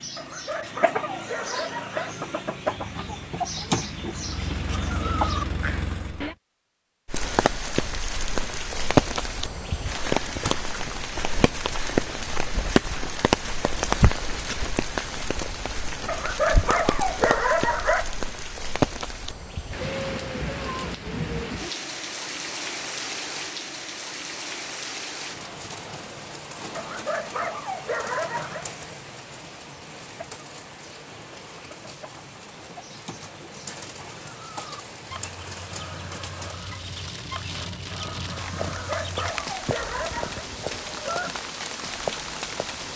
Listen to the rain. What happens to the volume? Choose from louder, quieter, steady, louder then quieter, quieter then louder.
quieter then louder.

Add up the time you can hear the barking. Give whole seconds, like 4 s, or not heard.
8 s.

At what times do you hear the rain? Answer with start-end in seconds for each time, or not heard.
7.0-42.9.